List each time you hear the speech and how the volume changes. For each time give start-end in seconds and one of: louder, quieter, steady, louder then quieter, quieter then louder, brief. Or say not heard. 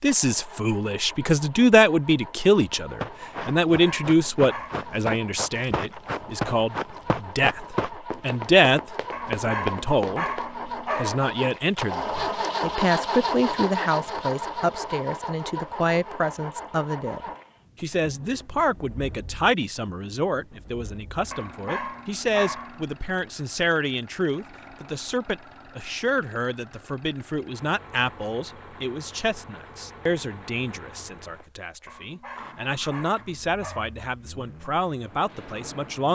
0.0-36.0 quieter.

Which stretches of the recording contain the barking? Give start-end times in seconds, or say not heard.
3.6-4.9, 9.1-11.2, 21.3-22.9, 31.9-34.0.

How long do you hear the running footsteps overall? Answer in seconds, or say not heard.
8 s.